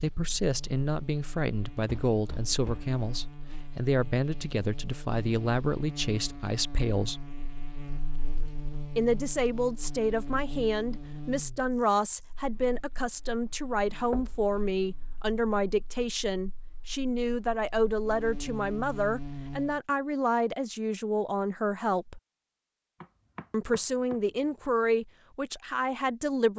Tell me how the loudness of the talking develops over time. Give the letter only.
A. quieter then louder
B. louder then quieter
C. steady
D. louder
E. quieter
C.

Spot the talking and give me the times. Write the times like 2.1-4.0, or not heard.
0.0-7.2, 8.9-22.2, 23.5-26.5.